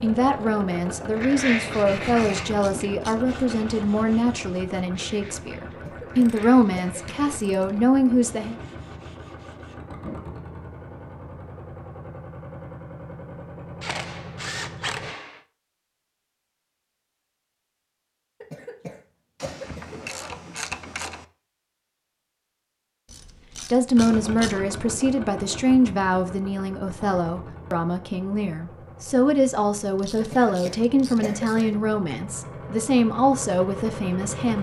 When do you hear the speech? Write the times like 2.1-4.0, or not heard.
0.0-8.6, 23.6-34.5.